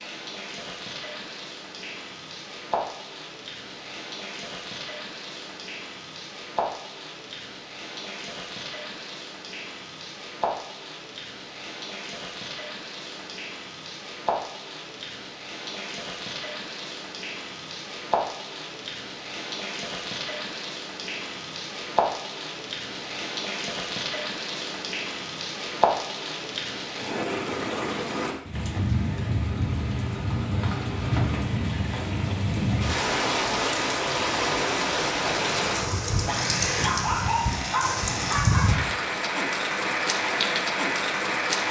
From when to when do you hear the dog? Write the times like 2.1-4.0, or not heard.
36.2-38.7.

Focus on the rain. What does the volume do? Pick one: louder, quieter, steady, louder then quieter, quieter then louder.
louder.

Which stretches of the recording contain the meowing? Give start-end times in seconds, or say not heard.
not heard.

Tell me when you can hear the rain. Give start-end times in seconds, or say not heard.
0.0-41.6.